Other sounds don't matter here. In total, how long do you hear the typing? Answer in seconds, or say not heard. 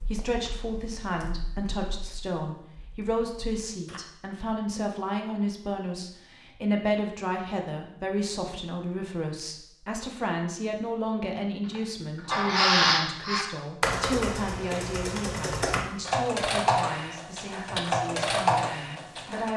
12 s.